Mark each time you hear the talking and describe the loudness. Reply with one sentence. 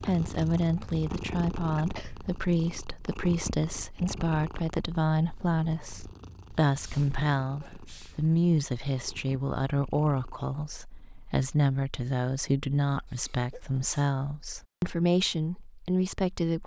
The talking can be heard from 0.0 to 16.6 s, at a steady volume.